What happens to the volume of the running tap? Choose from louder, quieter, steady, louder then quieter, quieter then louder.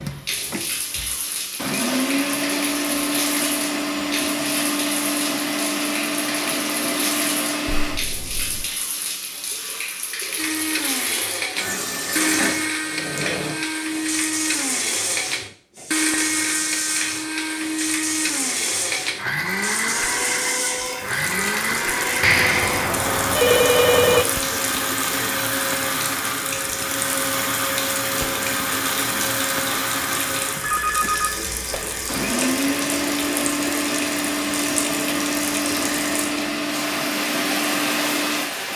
steady.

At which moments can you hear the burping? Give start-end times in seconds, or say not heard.
not heard.